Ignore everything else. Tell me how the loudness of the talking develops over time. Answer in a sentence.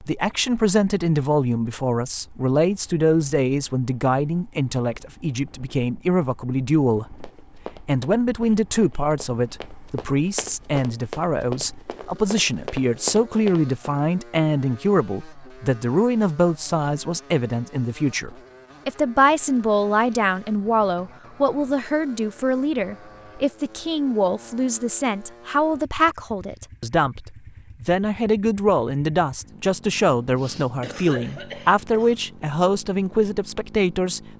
The loudness of the talking stays about the same.